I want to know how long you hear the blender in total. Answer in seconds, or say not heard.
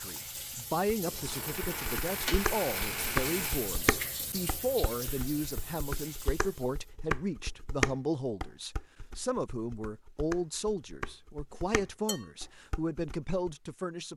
4 s.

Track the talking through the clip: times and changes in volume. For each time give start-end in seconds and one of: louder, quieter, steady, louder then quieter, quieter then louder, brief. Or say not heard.
0.0-14.1 steady.